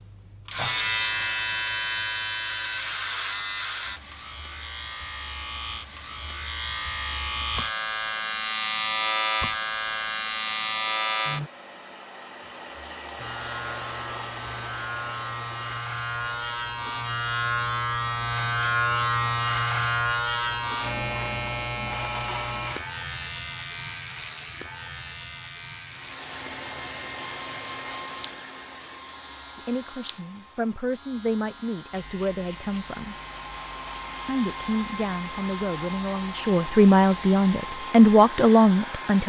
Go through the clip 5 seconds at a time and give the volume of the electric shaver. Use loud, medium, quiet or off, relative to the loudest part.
loud, loud, loud, loud, loud, quiet, quiet, quiet.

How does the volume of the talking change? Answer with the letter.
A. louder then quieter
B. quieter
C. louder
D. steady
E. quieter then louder
C.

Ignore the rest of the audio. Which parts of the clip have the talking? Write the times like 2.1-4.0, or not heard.
29.6-33.1, 34.2-39.2.